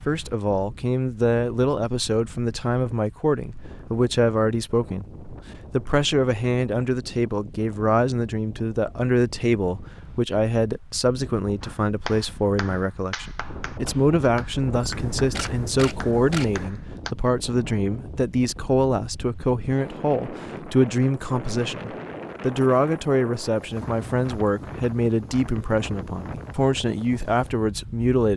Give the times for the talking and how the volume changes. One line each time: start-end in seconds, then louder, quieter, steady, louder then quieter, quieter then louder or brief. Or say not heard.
0.1-28.3 steady.